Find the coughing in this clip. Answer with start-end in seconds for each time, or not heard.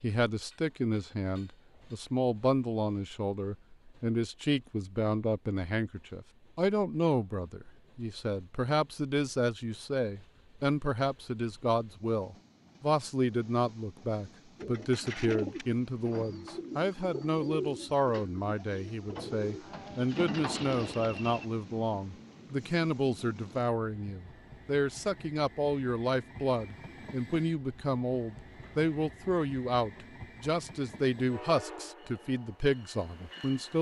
not heard.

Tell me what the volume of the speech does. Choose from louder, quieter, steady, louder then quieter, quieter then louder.
steady.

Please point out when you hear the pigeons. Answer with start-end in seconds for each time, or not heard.
14.6-21.4.